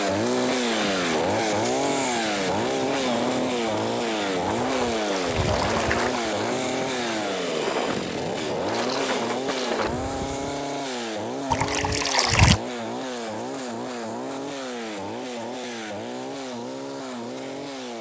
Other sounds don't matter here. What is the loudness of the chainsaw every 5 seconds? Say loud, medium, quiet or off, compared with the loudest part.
loud, loud, medium, medium.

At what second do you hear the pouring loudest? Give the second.
12 s.